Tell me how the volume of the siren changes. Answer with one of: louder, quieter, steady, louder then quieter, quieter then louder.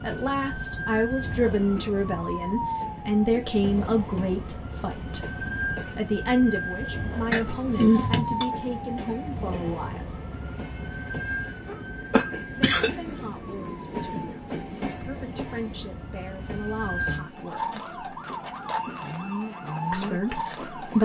quieter then louder.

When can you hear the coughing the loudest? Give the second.
8 s.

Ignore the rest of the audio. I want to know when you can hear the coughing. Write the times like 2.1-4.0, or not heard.
7.3-8.4, 11.7-12.9.